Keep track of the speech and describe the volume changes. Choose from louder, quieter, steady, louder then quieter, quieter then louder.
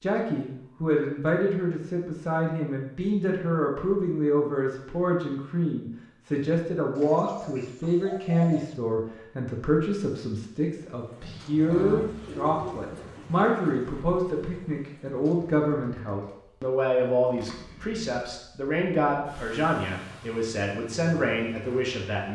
steady.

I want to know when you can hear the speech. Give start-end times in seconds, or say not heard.
0.0-22.3.